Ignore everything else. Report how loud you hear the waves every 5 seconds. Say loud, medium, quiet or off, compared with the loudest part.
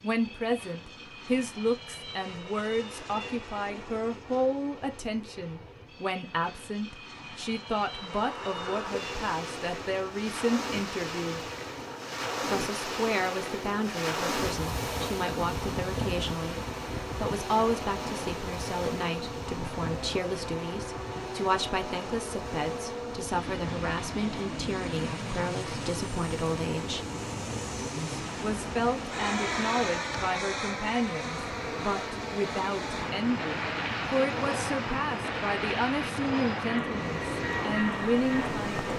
off, medium, loud, loud, medium, medium, medium, medium.